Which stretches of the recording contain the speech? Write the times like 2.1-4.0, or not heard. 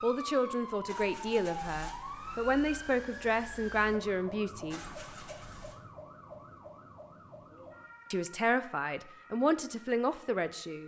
0.0-4.8, 8.1-10.8.